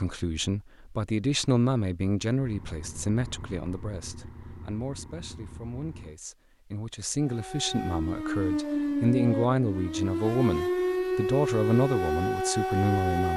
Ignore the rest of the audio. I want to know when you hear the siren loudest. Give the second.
11 s.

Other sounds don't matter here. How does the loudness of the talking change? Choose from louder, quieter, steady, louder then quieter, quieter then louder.
quieter then louder.